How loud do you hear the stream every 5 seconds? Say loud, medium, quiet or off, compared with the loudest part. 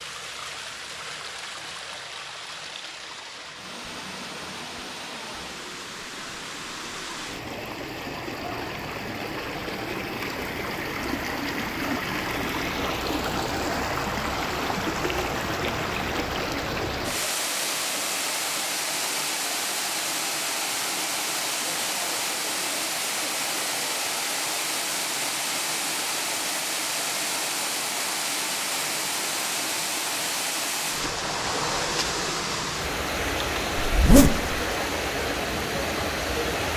medium, medium, loud, loud, loud, loud, loud, loud.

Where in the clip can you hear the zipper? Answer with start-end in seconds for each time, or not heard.
33.8-34.6.